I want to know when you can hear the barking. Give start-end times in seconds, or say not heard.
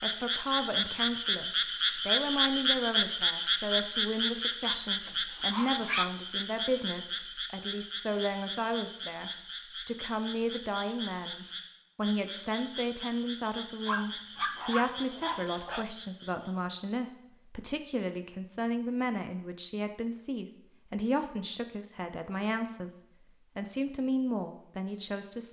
4.7-6.1, 13.8-15.8.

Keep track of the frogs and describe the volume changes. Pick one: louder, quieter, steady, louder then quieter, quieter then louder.
quieter.